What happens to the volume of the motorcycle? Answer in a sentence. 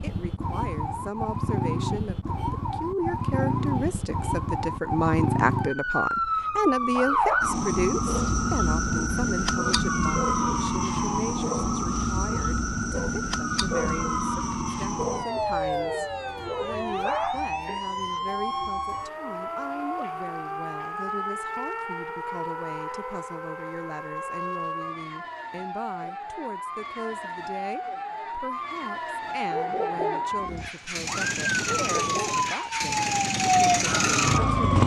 The loudness of the motorcycle goes up.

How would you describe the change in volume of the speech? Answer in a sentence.
The loudness of the speech goes down.